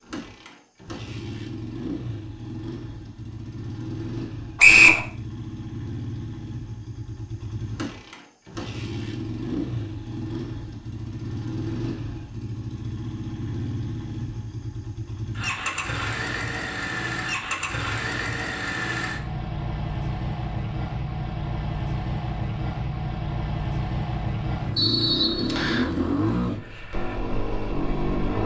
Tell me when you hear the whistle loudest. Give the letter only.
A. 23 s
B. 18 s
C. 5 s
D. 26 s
C.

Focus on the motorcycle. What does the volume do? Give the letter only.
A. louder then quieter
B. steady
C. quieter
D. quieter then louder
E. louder
E.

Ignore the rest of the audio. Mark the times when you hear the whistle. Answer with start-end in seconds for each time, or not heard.
4.5-5.0, 24.8-25.9.